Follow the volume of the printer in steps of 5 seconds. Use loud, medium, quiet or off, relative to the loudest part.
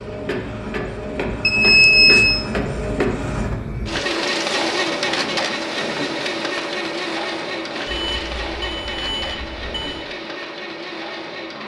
loud, loud, medium.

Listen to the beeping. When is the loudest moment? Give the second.
2 s.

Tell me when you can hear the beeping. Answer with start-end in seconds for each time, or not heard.
1.4-2.4, 7.8-10.1.